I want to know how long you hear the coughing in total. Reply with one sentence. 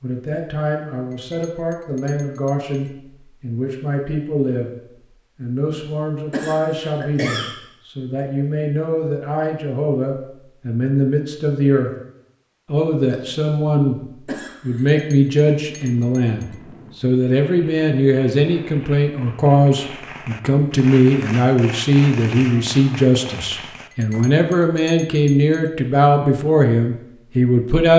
The coughing can be heard for 2 seconds in total.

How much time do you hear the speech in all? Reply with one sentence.
The speech can be heard for 26 seconds in total.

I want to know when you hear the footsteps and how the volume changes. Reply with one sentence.
The footsteps can't be heard in this clip.